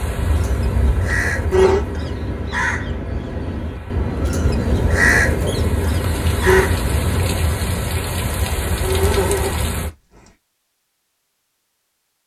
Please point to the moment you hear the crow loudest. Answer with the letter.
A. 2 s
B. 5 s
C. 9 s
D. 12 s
B.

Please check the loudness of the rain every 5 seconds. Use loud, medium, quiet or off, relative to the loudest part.
medium, loud, off.